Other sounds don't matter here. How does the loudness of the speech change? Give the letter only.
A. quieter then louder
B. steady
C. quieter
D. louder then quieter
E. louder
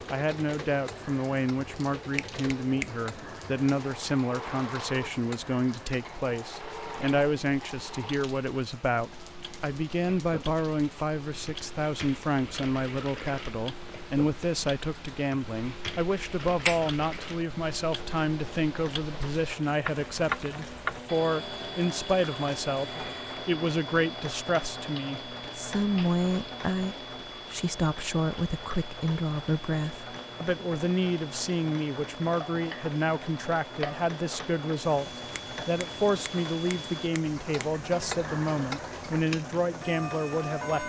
B.